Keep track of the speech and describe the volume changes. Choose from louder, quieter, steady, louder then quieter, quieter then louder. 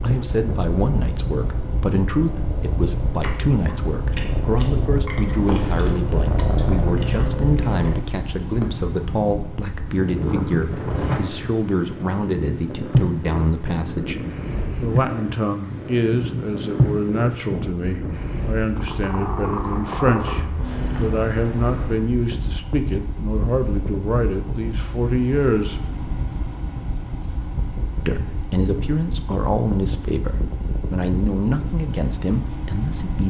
steady.